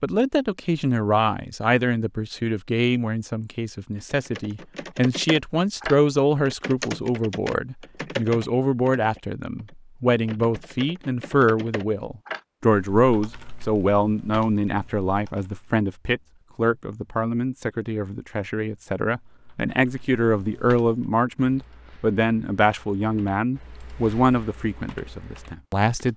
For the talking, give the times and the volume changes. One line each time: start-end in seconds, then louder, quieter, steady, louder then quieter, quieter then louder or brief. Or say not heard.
0.0-26.1 steady.